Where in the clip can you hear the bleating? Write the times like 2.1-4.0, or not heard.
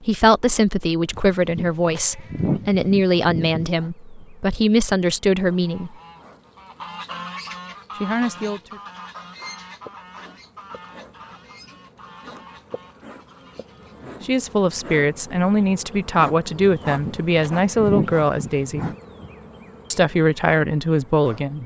1.1-3.7, 16.6-18.9.